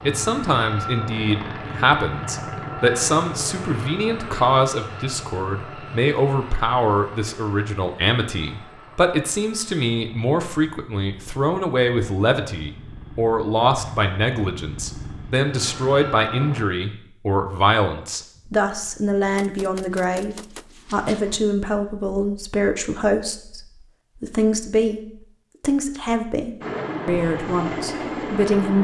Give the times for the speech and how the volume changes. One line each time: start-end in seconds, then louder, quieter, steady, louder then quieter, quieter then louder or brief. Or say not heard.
0.1-28.7 steady.